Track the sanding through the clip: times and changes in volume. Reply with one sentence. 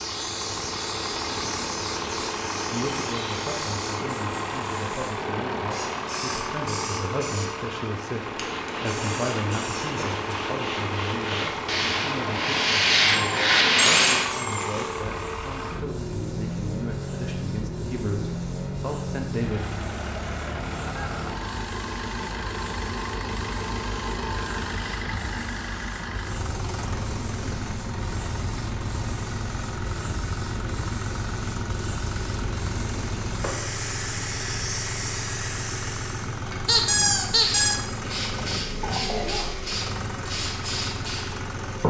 You can hear the sanding from 8.3 to 14.3 s, getting louder.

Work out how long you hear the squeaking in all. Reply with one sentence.
The squeaking can be heard for 3 seconds in total.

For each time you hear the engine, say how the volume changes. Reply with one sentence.
You can hear the engine from 0.0 to 41.8 s, at a steady volume.